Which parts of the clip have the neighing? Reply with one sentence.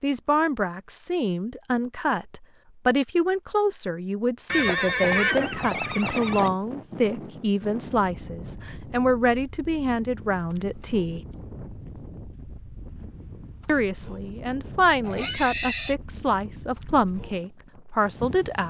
You can hear the neighing from 4.5 to 6.5 s and from 15.0 to 15.9 s.